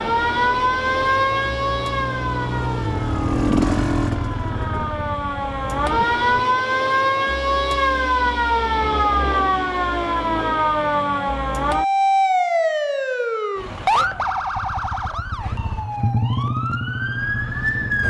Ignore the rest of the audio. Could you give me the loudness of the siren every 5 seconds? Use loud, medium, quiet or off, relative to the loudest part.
loud, loud, loud, medium.